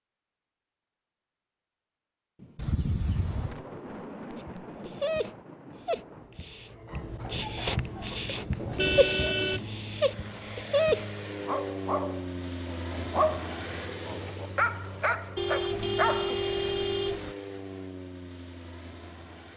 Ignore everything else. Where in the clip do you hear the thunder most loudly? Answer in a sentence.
The volume of the thunder peaks at 4 seconds.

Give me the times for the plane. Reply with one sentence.
You can hear the plane from 7.8 to 19.5 s.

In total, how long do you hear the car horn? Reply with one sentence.
The car horn can be heard for 4 seconds in total.